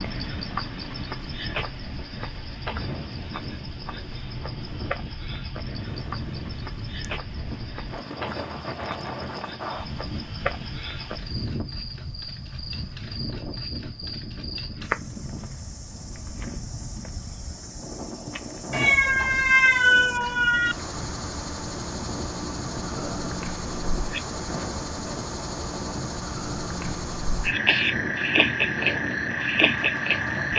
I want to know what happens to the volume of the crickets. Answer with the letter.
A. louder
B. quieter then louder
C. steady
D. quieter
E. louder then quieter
A.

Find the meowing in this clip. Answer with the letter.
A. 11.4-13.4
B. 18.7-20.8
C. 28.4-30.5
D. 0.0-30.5
B.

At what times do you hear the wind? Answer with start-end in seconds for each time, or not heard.
0.0-30.5.